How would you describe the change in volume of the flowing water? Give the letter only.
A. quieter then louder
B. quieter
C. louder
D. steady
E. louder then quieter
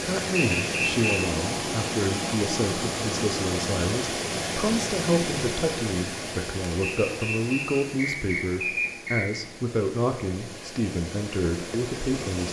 B.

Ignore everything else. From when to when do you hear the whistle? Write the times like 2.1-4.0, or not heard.
0.3-1.2, 6.8-9.4.